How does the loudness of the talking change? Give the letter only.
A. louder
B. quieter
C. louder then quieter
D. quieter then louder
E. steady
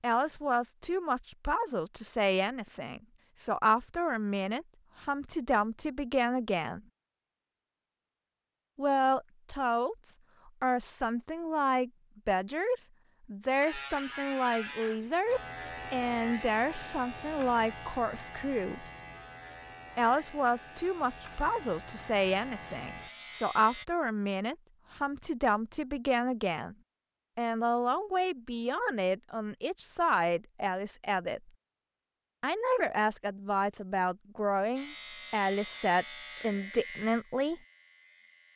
E.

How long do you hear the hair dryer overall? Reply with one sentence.
The hair dryer can't be heard in this clip.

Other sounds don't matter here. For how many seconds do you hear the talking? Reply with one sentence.
The talking can be heard for 33 seconds in total.